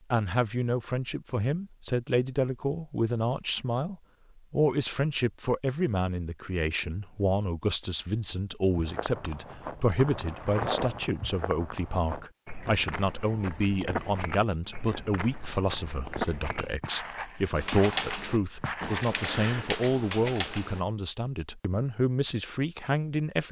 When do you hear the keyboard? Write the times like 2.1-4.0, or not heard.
17.6-20.8.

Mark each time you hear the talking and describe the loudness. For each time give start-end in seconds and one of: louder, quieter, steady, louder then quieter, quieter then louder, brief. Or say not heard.
0.1-23.4 steady.